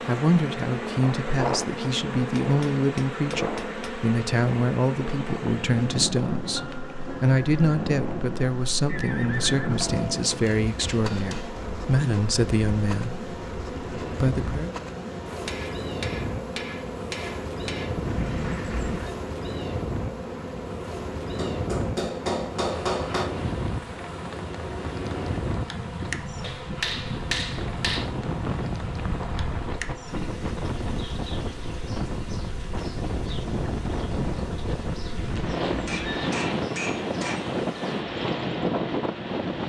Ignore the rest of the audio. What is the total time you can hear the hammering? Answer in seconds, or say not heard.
11 s.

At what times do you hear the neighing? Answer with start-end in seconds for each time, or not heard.
8.8-9.8, 17.9-19.1, 35.0-36.4.